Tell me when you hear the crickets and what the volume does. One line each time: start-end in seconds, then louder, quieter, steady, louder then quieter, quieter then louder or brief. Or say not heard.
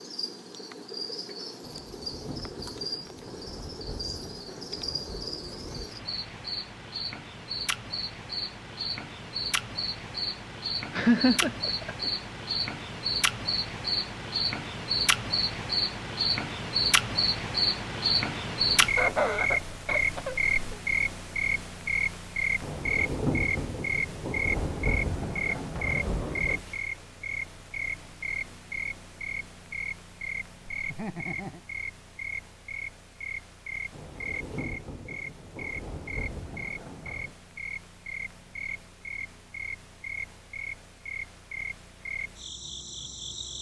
0.0-43.5 louder then quieter.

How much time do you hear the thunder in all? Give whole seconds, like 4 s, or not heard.
12 s.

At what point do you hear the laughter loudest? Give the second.
11 s.